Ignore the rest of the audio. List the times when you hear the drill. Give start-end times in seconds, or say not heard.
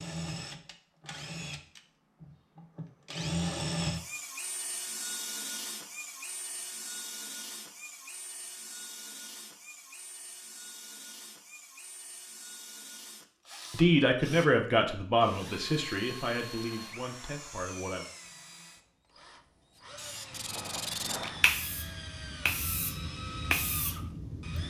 0.0-24.6.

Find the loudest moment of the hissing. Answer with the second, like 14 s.
21 s.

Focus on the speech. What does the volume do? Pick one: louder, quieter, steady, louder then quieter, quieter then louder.
quieter.